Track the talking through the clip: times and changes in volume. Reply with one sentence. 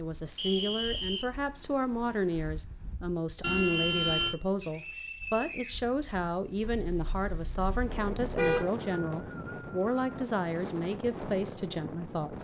The talking can be heard from 0.0 to 12.3 s, at a steady volume.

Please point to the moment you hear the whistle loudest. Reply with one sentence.
The loudest moment of the whistle is at 1 second.